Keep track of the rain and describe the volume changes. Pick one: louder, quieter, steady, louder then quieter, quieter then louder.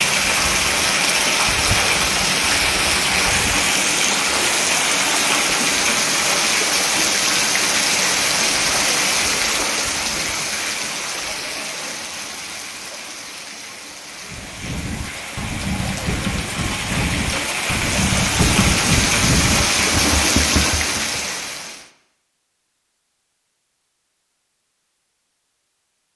quieter then louder.